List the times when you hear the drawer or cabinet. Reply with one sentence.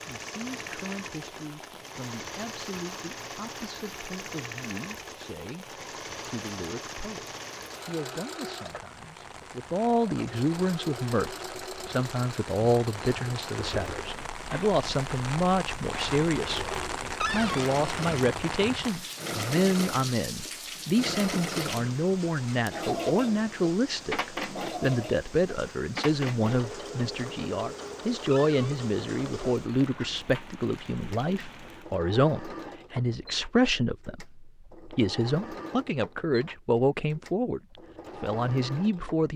You can hear the drawer or cabinet from 17.2 to 17.6 s and from 28.3 to 28.8 s.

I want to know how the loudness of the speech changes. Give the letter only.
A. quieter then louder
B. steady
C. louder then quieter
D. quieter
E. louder
E.